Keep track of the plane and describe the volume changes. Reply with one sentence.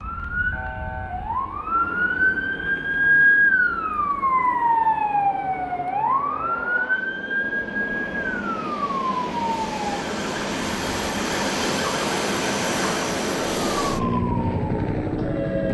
The volume of the plane goes up.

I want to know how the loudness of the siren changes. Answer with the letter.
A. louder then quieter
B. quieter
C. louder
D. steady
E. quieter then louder
B.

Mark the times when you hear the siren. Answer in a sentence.
The siren can be heard from 0.0 to 15.6 s.